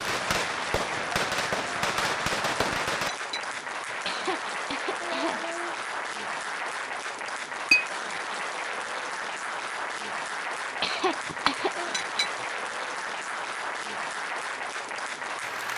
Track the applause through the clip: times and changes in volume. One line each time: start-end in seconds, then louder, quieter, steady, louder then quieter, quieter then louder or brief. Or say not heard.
0.0-15.7 steady.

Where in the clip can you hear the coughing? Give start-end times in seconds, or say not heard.
4.0-5.8, 10.8-11.9.